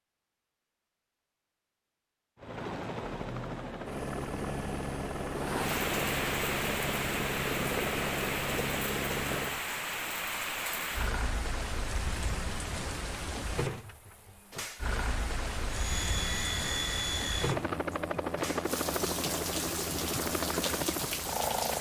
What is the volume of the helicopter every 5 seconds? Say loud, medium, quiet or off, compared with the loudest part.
loud, loud, off, loud, loud.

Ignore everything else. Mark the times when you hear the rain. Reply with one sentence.
The rain can be heard from 5.3 to 21.7 s.